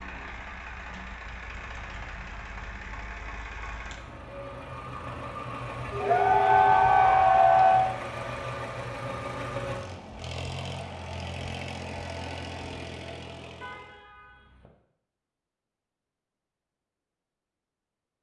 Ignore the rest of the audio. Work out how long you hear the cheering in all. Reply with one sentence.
You can hear the cheering for 2 seconds altogether.